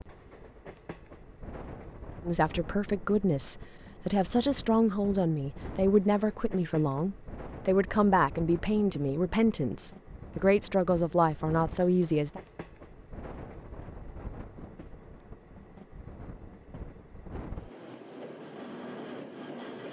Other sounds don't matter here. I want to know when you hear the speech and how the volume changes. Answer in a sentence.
The speech can be heard from 2.2 to 12.4 s, at a steady volume.